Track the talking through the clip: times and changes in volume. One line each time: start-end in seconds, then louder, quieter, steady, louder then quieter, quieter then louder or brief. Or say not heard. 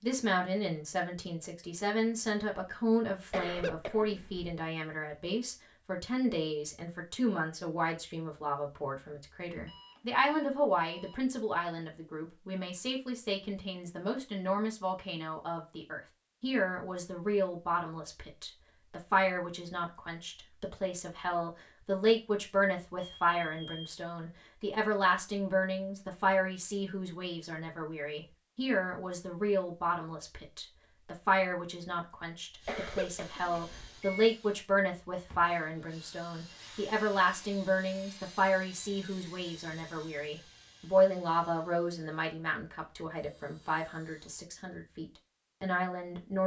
0.0-46.4 steady.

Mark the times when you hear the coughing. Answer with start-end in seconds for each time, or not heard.
3.3-4.5, 32.6-33.9.